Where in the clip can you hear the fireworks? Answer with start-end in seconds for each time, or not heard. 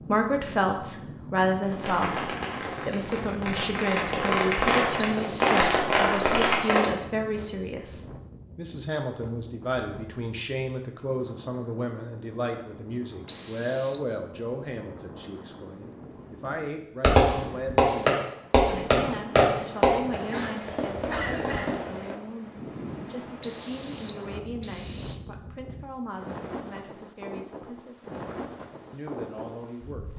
1.6-6.9, 17.0-22.1.